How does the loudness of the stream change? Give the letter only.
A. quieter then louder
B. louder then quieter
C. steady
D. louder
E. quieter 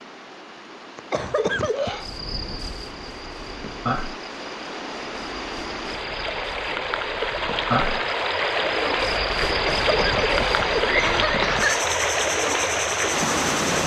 D.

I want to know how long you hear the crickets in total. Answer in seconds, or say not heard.
12 s.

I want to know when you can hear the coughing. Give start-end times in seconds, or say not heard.
0.9-2.1, 9.5-11.8.